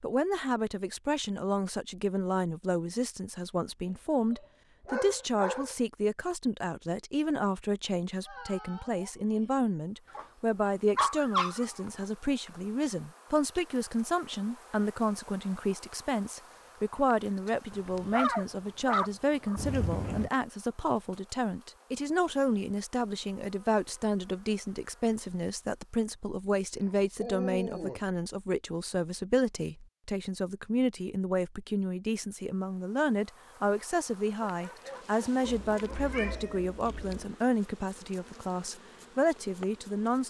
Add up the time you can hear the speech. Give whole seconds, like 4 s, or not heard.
40 s.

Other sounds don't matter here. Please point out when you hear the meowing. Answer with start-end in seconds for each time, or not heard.
8.2-9.5, 19.6-20.3, 35.5-37.3.